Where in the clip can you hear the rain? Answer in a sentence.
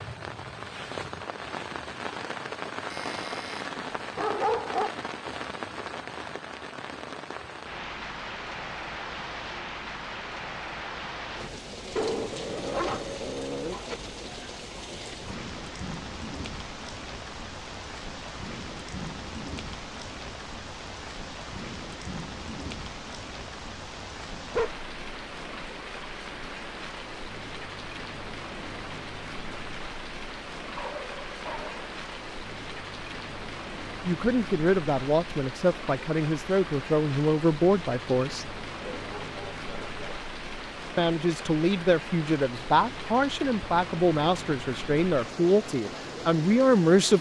The rain can be heard from 0.0 to 47.1 s.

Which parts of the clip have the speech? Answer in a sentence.
You can hear the speech from 34.0 to 38.5 s and from 41.0 to 47.1 s.